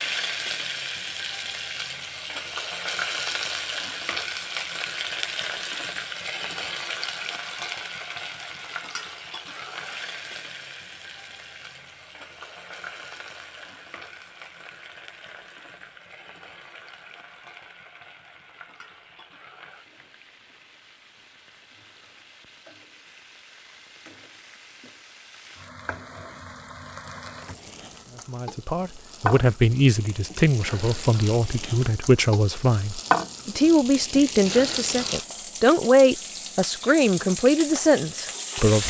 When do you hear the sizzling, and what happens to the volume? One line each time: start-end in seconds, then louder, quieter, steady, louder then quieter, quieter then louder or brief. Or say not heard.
0.0-38.8 quieter then louder.